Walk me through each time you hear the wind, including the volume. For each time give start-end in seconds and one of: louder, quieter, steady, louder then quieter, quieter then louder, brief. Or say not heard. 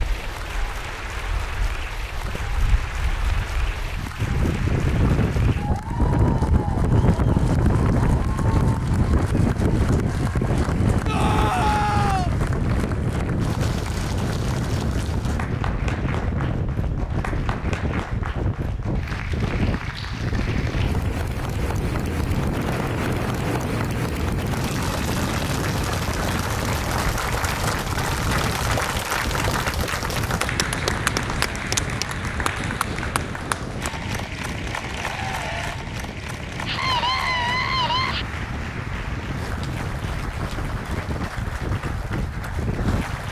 0.0-43.2 quieter.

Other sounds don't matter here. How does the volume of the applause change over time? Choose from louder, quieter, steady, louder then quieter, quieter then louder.
louder then quieter.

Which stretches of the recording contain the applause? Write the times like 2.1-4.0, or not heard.
0.0-43.2.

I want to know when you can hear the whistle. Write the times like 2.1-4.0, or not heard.
not heard.